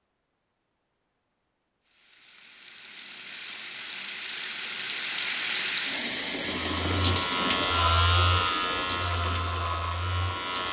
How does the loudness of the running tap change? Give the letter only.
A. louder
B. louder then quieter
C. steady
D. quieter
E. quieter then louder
B.